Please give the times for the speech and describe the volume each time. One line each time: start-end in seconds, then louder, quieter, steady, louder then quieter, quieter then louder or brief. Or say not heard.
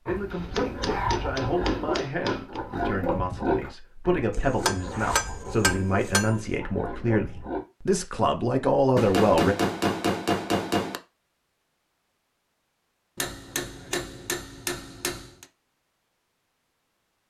0.0-9.6 louder.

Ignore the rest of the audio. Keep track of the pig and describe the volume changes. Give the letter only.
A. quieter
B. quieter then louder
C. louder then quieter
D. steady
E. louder
A.